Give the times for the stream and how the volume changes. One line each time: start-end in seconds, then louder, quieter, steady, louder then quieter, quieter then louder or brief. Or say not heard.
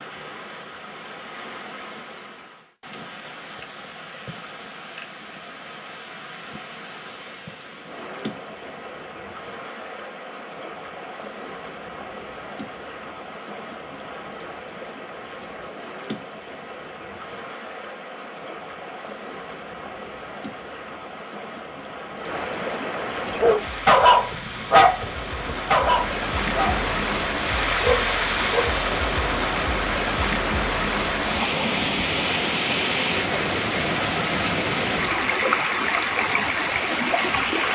0.0-37.7 louder.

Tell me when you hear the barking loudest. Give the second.
24 s.